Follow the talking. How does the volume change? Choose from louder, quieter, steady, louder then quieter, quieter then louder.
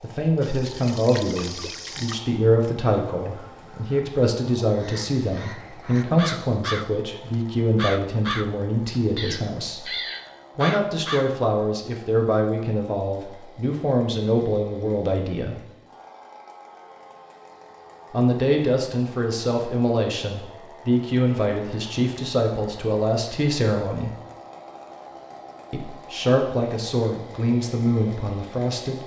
steady.